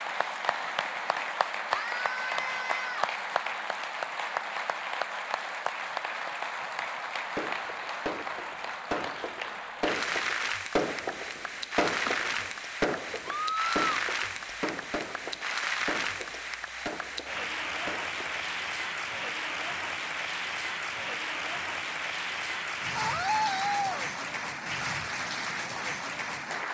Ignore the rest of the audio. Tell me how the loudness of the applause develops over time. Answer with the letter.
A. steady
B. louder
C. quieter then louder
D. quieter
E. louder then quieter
A.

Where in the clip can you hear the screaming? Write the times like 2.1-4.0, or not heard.
1.7-3.1, 13.2-13.8, 22.9-24.1.